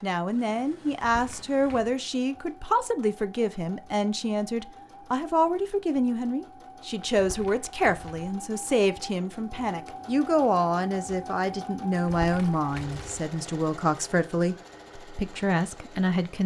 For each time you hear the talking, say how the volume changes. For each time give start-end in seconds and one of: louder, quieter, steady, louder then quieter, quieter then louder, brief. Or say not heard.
0.0-16.4 steady.